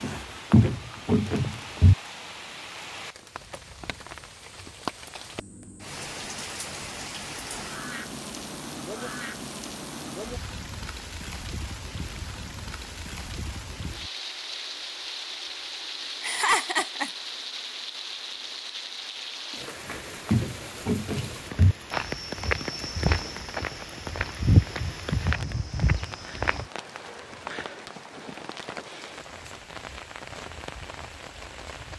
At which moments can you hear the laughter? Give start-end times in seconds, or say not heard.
16.2-17.1.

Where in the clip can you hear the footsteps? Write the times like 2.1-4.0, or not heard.
0.0-1.9, 19.9-26.6.